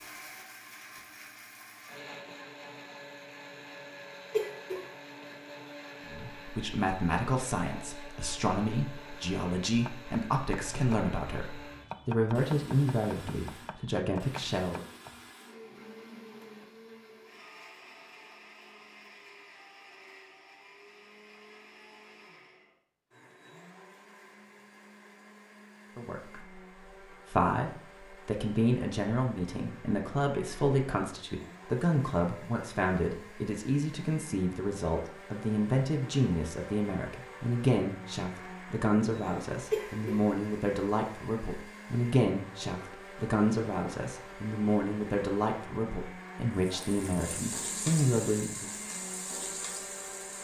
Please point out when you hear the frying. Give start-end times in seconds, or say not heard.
46.5-50.3.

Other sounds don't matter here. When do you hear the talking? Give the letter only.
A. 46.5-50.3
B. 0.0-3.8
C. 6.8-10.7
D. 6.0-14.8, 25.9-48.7
D.